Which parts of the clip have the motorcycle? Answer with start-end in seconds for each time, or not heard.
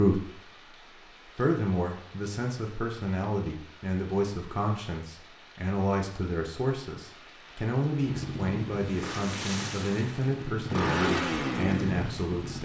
8.0-12.6.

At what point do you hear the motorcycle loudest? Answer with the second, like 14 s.
11 s.